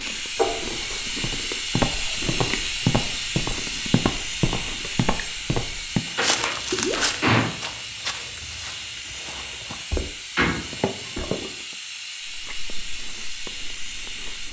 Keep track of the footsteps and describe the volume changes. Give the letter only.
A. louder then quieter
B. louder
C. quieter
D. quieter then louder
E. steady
C.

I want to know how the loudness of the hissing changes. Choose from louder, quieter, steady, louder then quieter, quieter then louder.
quieter.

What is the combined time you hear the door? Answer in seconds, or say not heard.
3 s.